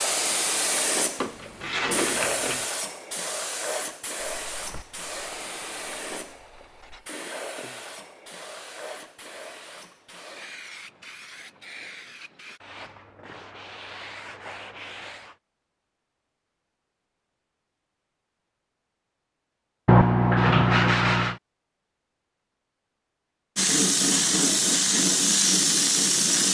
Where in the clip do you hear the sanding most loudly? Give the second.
20 s.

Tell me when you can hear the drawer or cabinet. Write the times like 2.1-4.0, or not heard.
1.1-2.6.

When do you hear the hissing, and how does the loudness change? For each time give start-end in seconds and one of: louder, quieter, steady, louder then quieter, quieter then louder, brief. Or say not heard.
0.0-12.6 quieter
23.6-26.4 brief.